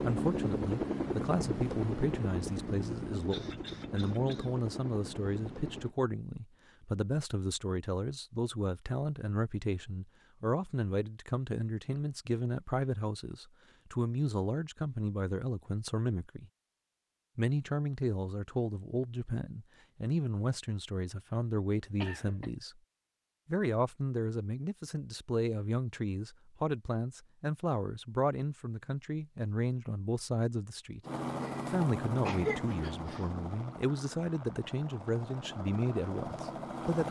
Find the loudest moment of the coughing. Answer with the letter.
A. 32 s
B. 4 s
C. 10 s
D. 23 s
A.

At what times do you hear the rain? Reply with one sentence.
You can't hear the rain here.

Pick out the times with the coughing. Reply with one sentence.
You can hear the coughing from 3.3 to 4.5 s, from 22.0 to 22.5 s and from 31.4 to 33.3 s.